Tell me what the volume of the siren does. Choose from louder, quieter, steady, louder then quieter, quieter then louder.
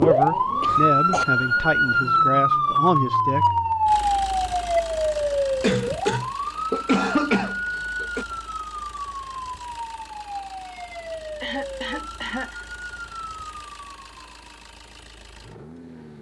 quieter.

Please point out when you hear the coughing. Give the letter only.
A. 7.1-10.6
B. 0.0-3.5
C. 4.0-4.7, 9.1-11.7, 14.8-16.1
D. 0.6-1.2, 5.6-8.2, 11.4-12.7
D.